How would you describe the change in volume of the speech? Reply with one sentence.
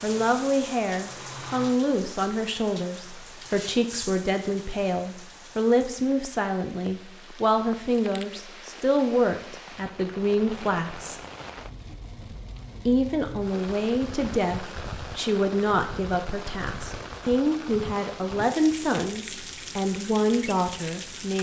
The volume of the speech stays about the same.